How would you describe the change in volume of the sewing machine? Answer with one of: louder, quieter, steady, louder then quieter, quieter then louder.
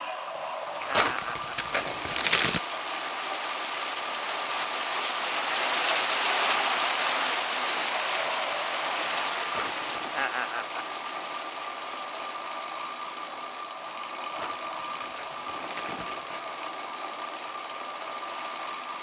steady.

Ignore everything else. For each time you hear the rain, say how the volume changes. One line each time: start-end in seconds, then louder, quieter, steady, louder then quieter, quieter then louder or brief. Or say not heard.
0.0-18.9 louder then quieter.